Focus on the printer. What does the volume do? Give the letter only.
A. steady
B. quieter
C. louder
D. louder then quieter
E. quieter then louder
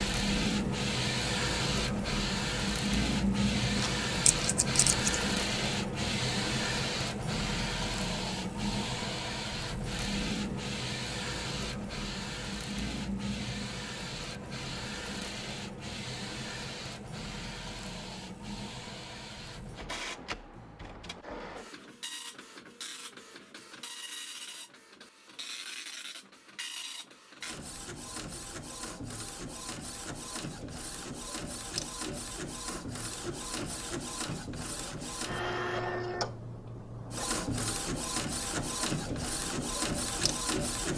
E.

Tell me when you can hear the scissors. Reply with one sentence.
You can hear the scissors from 3.8 to 5.2 s.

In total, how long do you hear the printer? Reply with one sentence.
The printer can be heard for 41 seconds in total.